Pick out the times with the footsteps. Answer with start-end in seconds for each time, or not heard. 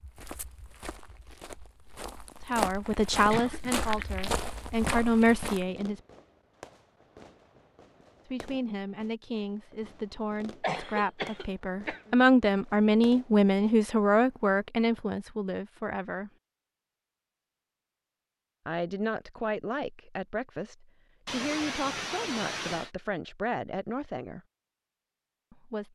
0.0-5.7.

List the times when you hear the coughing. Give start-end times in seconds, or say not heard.
3.3-3.9, 10.6-12.2, 21.2-22.9.